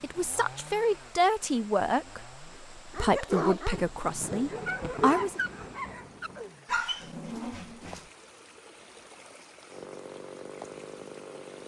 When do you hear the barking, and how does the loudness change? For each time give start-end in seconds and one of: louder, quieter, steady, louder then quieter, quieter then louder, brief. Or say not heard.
2.9-8.1 quieter.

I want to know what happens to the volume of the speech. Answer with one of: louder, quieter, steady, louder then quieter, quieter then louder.
quieter.